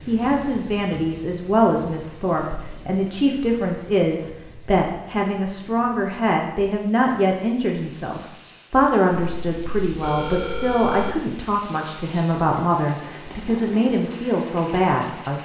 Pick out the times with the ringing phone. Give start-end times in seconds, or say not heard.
9.2-11.2.